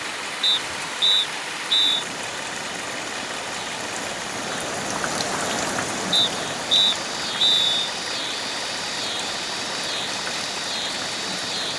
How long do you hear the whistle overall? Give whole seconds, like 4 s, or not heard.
3 s.